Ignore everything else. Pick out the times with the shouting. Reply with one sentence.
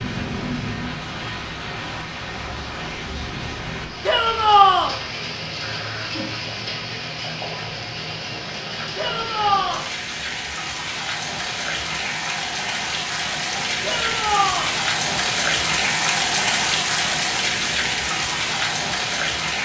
You can hear the shouting from 4.0 to 5.0 s, from 8.9 to 9.8 s and from 13.8 to 14.8 s.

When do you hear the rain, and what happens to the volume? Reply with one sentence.
The rain can be heard from 0.0 to 19.5 s, getting louder.